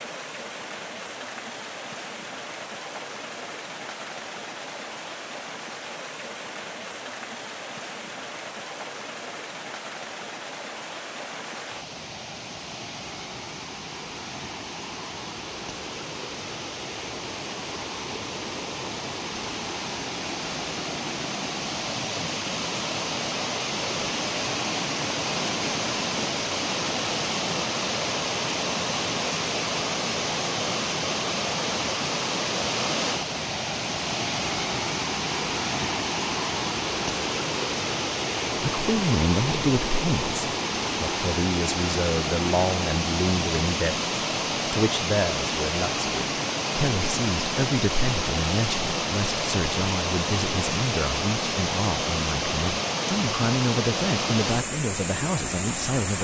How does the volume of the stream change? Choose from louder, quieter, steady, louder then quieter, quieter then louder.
louder.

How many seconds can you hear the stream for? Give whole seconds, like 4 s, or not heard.
56 s.